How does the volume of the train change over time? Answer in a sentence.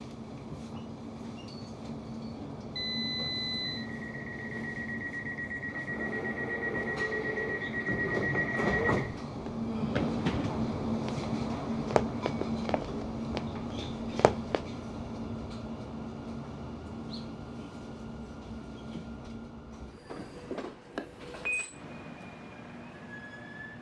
The loudness of the train goes up, then down.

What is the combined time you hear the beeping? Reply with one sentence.
The beeping can be heard for 2 seconds in total.